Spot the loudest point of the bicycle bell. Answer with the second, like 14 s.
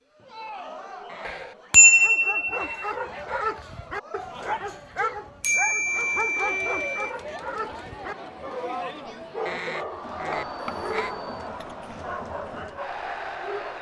2 s.